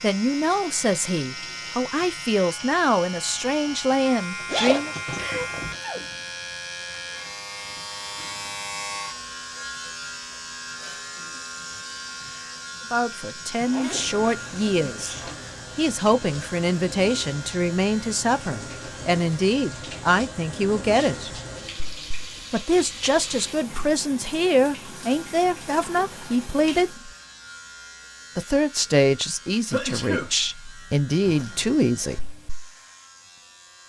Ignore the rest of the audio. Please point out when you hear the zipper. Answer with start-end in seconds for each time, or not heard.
4.5-5.8, 13.7-14.4, 31.2-32.4.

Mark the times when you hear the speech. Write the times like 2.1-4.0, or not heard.
0.0-5.0, 12.9-15.2, 15.8-21.3, 22.5-27.1, 28.4-32.3.